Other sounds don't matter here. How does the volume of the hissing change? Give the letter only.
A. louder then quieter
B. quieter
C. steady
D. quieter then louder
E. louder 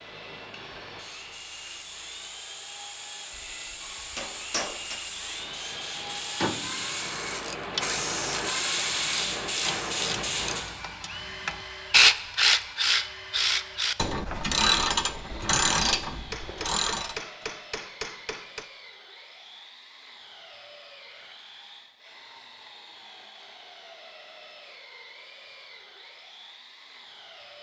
E.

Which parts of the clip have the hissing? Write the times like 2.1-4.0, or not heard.
0.0-10.7.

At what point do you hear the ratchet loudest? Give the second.
12 s.